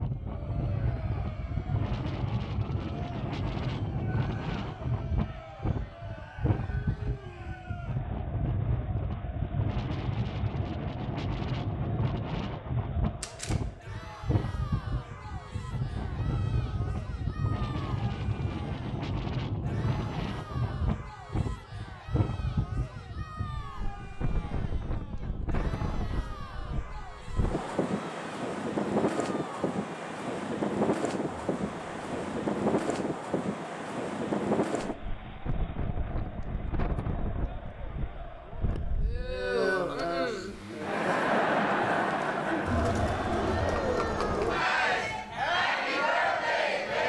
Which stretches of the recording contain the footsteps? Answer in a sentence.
The footsteps can't be heard in this clip.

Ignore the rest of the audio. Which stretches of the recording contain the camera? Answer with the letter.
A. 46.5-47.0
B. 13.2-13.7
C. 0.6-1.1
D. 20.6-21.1
B.